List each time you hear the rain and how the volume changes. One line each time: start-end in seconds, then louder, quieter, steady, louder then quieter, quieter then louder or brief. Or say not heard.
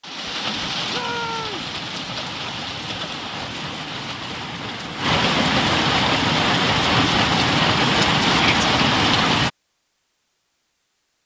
0.0-9.5 louder.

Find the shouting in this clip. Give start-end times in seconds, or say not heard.
0.9-1.7, 8.2-8.7.